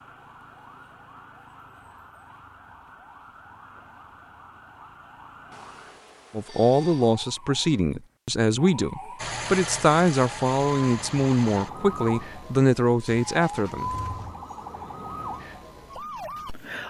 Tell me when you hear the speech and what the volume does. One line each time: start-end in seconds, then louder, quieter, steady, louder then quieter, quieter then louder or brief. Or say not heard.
6.3-13.9 steady.